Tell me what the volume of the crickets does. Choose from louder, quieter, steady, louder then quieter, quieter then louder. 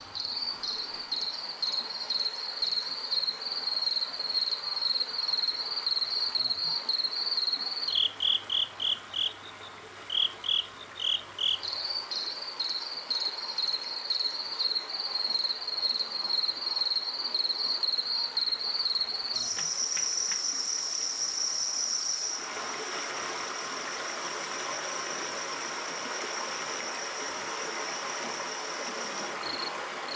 quieter.